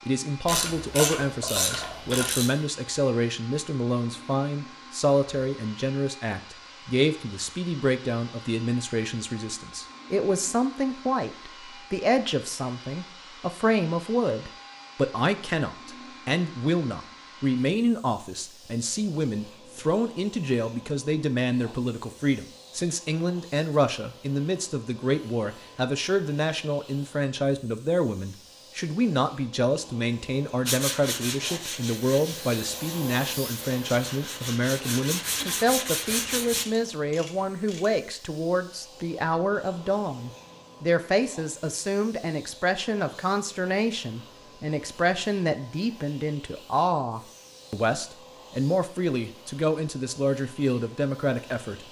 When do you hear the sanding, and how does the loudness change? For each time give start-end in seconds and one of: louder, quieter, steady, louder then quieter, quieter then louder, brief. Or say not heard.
30.6-36.6 quieter then louder.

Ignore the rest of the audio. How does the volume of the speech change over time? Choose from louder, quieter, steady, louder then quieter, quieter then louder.
steady.